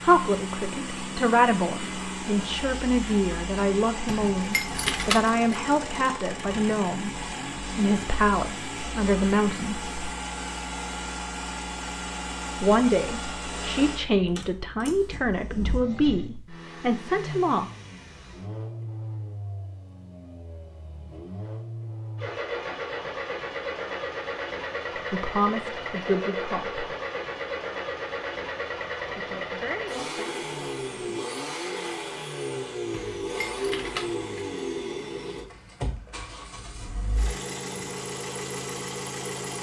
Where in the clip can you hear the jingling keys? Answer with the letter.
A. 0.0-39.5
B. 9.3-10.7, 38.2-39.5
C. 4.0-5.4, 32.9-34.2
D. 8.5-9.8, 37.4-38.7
C.